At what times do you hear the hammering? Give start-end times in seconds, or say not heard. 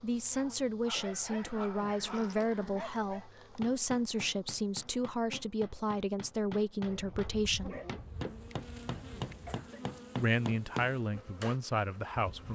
3.6-11.6.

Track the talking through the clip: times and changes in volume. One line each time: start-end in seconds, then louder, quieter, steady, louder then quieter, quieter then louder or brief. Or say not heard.
0.0-7.8 steady
10.2-12.4 brief.